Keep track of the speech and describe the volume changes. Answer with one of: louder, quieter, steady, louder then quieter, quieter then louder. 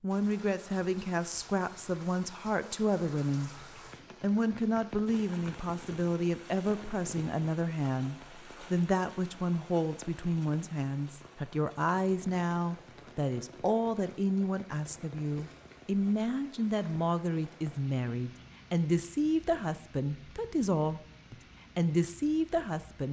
steady.